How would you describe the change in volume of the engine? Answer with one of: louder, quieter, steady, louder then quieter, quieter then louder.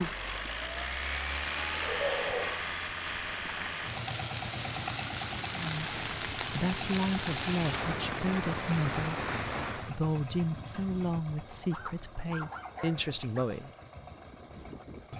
quieter.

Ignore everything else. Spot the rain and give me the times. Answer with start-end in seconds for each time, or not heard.
0.0-10.0.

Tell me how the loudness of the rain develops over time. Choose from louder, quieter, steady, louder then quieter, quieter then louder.
louder.